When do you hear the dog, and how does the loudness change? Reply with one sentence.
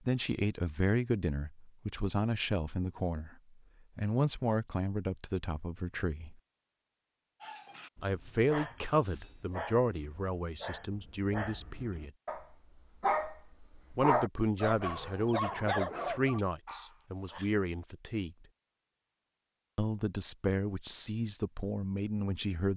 The dog can be heard from 7.4 to 17.5 s, getting louder.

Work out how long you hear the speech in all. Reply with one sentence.
You can hear the speech for 17 seconds altogether.